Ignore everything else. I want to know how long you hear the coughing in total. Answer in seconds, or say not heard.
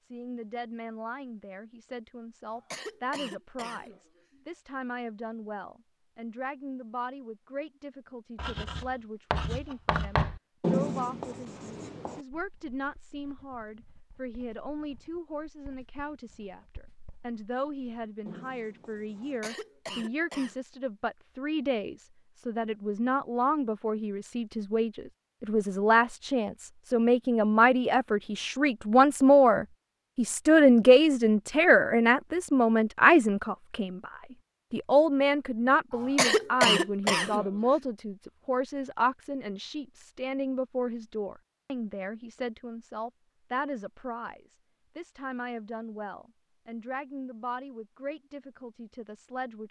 5 s.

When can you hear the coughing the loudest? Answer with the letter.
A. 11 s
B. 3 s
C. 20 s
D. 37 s
D.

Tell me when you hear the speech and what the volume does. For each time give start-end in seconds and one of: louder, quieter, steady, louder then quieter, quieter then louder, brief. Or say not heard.
0.0-34.1 louder
34.7-49.6 quieter.